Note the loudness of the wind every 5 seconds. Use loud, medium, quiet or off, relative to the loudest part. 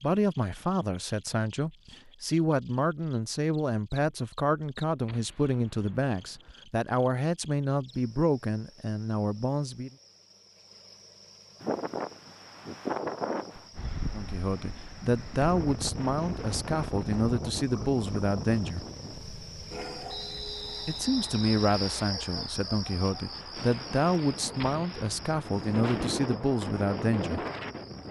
off, off, loud, loud, medium, loud.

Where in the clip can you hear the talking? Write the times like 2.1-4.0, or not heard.
0.0-9.9, 14.1-18.9, 20.9-27.4.